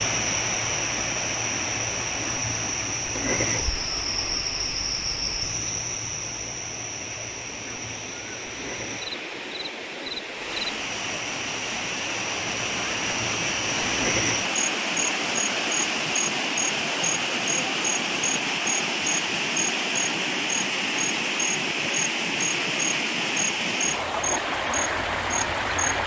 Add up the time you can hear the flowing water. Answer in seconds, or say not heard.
26 s.